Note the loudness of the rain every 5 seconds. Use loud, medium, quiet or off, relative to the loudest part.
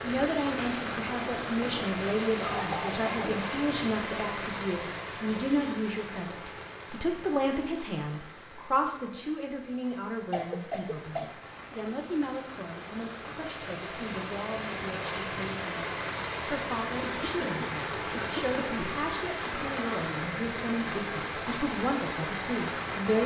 loud, medium, medium, loud, loud.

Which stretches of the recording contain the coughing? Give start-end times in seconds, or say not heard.
2.4-3.4, 10.3-11.9, 17.0-18.8.